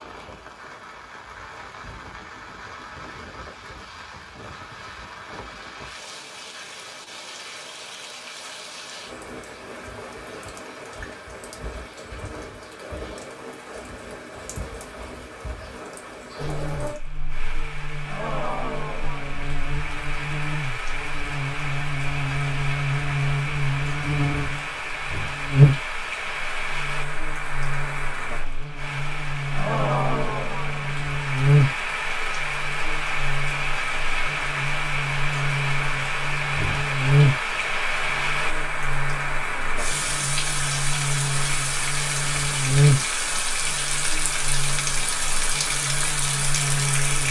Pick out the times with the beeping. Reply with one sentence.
You can't hear the beeping here.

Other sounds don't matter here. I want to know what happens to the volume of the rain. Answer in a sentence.
The volume of the rain goes up.